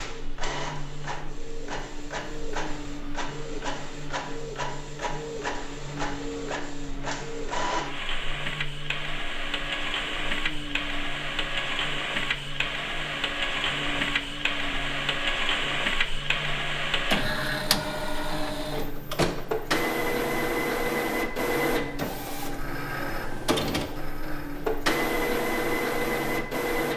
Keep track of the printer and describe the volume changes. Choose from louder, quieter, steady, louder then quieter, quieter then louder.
louder.